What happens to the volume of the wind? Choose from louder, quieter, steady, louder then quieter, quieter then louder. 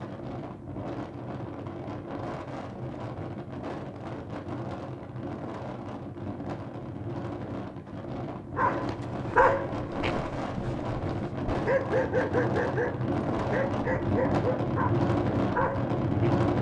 louder.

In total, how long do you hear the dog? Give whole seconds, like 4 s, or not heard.
8 s.